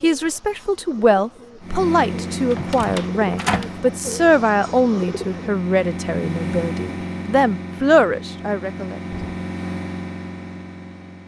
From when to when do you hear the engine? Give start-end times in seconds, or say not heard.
1.6-11.2.